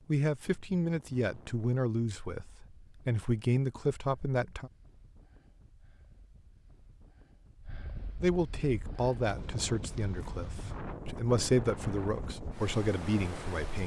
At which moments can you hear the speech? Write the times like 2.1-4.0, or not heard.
0.1-4.7, 8.2-13.8.